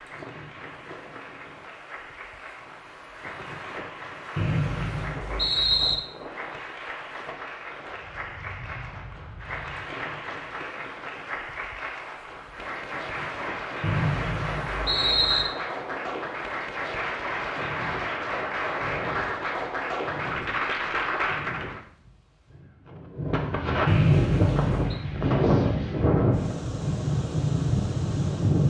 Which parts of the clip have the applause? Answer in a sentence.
You can hear the applause from 0.0 to 21.8 s.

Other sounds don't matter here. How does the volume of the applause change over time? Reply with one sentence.
The loudness of the applause goes up.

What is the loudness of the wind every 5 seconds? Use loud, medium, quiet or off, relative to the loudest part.
quiet, quiet, quiet, quiet, medium, loud.